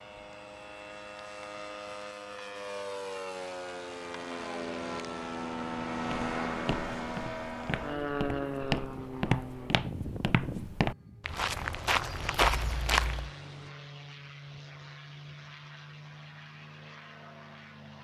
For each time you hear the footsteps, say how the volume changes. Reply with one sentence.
You can hear the footsteps from 6.0 to 13.3 s, getting louder.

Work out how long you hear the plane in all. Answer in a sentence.
The plane can be heard for 18 seconds in total.